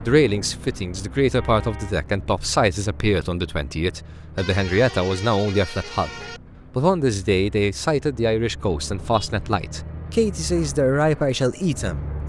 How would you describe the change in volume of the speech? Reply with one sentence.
The loudness of the speech stays about the same.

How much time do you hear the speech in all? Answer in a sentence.
You can hear the speech for 12 seconds altogether.